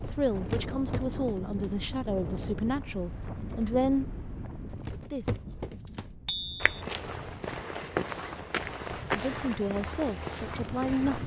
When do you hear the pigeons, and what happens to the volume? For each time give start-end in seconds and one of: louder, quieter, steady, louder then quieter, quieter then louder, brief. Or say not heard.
not heard.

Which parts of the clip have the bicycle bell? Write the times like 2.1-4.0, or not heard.
6.2-6.8.